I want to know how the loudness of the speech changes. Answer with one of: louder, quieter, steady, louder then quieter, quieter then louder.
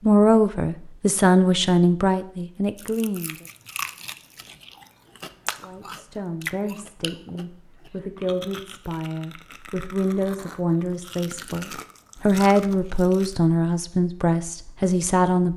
quieter then louder.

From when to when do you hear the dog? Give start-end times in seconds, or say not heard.
not heard.